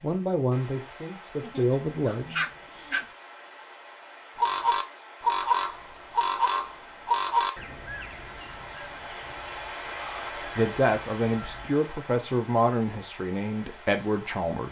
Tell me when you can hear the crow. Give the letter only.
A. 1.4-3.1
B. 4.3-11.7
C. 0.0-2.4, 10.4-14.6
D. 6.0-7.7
B.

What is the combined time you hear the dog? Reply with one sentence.
The dog can be heard for 2 seconds in total.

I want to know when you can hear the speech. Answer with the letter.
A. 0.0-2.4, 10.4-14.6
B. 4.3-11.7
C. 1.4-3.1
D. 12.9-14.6
A.